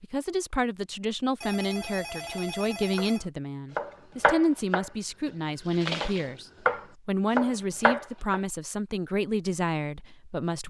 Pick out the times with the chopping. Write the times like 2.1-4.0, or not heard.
2.0-4.9, 5.7-8.4.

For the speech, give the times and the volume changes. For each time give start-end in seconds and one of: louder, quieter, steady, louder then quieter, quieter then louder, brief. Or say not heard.
0.0-10.6 steady.